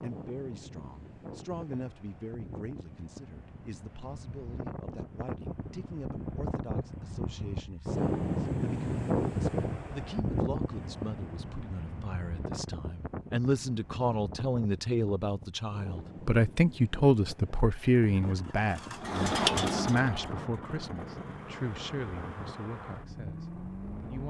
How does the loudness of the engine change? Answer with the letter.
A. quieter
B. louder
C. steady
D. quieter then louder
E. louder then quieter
E.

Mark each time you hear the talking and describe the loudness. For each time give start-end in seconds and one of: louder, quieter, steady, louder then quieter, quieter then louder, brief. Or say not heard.
0.0-24.2 louder then quieter.